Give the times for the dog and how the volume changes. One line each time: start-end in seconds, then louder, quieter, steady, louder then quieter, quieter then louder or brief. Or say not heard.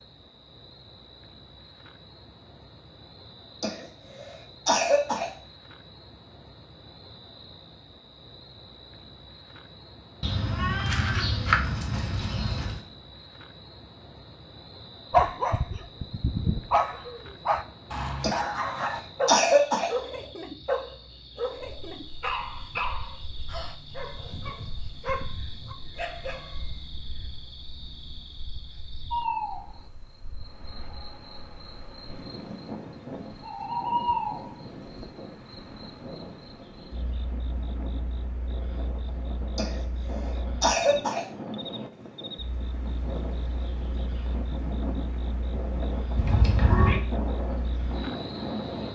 15.1-26.7 quieter.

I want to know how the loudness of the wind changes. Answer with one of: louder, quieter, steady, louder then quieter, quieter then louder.
louder.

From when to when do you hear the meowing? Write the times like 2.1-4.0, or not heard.
10.2-12.8, 46.1-47.0.